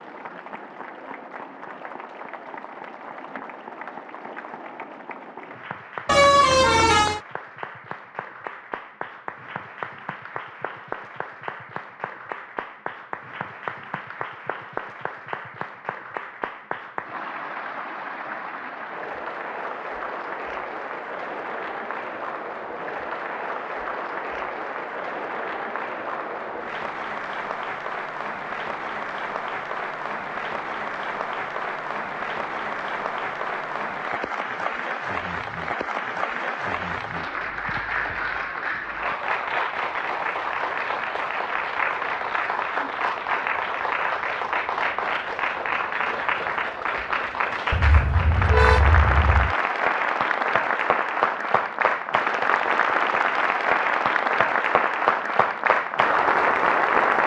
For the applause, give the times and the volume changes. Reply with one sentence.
You can hear the applause from 0.0 to 57.2 s, getting louder.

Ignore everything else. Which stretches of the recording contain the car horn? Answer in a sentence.
The car horn can be heard from 6.0 to 7.2 s and from 47.7 to 49.5 s.